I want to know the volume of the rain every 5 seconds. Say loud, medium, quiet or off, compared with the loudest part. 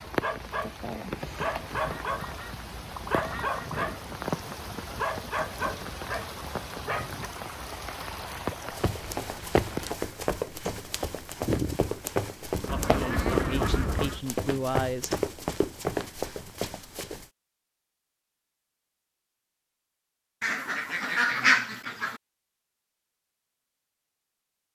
loud, loud, loud, off, off.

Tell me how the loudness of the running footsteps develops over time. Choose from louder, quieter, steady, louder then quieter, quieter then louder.
steady.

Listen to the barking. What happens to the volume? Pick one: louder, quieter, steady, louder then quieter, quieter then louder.
steady.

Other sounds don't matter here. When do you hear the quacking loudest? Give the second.
21 s.